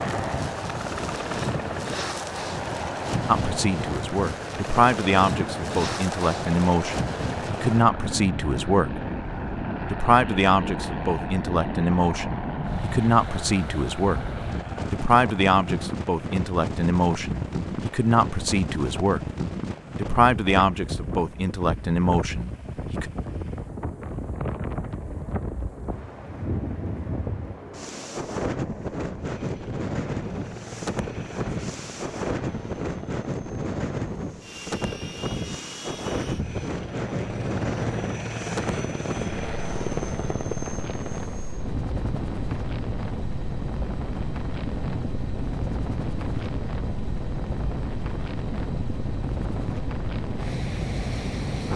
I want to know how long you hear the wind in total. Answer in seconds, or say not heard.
52 s.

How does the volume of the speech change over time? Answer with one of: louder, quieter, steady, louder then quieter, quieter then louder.
steady.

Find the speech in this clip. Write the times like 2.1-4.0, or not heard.
3.2-8.9, 9.9-14.2, 14.9-19.2, 19.9-23.1.